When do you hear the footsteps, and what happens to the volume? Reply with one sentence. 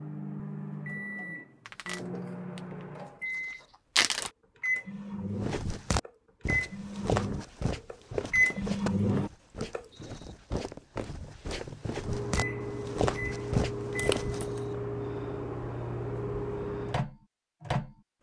You can hear the footsteps from 5.4 to 14.6 s, getting quieter then louder.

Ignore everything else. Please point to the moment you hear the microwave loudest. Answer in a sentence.
The loudest moment of the microwave is at 9 seconds.